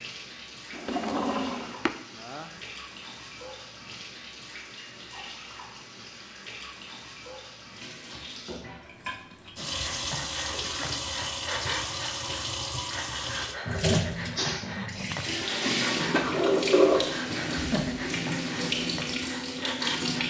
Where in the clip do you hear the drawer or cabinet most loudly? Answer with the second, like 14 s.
17 s.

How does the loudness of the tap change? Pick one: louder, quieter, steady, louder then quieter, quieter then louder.
louder.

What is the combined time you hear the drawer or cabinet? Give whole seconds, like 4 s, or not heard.
2 s.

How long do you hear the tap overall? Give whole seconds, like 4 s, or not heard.
20 s.